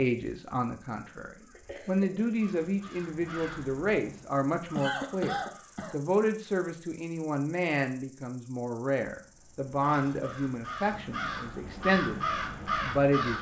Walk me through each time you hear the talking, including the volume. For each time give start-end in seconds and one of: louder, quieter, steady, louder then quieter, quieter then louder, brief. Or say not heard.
0.0-13.3 steady.